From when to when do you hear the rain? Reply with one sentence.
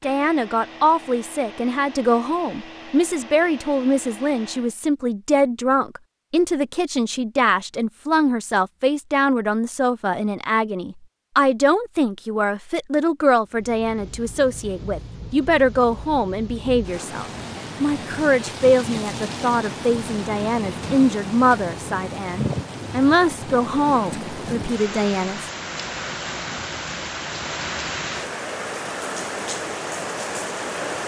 The rain can be heard from 13.4 to 31.0 s.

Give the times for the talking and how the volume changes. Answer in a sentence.
You can hear the talking from 0.0 to 25.4 s, at a steady volume.